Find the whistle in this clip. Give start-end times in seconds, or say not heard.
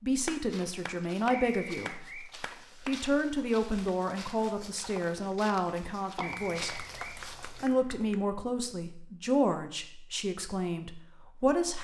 1.4-2.3, 6.2-7.2.